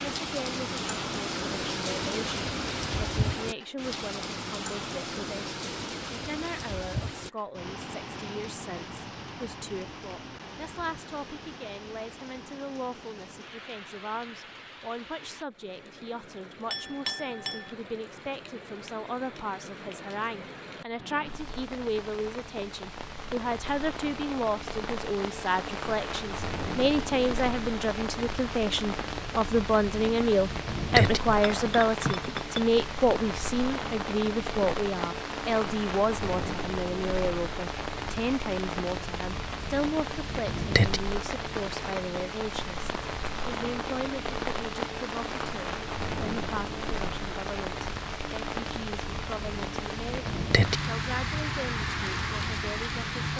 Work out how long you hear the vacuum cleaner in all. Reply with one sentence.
The vacuum cleaner can't be heard in this clip.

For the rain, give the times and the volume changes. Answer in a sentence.
You can hear the rain from 0.0 to 53.3 s, getting quieter then louder.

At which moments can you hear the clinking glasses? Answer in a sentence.
The clinking glasses can be heard from 16.7 to 17.7 s and from 31.2 to 32.6 s.